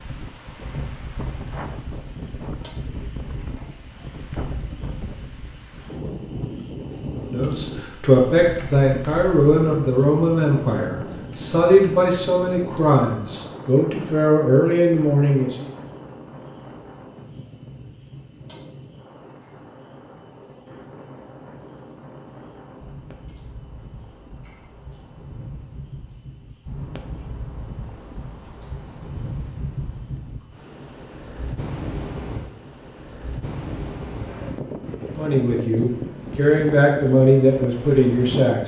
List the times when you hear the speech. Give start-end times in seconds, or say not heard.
7.2-15.7, 35.1-38.6.